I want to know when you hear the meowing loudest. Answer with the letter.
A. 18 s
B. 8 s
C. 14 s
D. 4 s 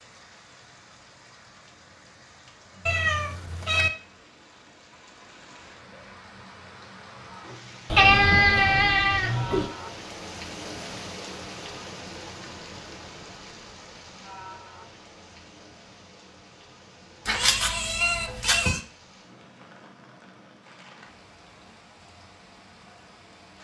B.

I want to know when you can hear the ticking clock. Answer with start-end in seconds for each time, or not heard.
not heard.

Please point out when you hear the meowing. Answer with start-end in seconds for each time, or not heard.
2.9-3.9, 7.9-9.7, 17.2-18.8.